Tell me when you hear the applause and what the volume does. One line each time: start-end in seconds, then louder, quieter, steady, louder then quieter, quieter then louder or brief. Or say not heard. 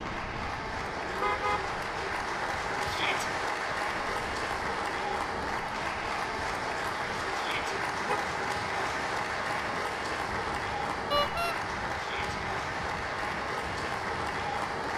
0.0-14.9 steady.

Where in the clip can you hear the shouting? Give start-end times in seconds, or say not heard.
2.9-3.3, 7.3-7.8, 11.9-12.4.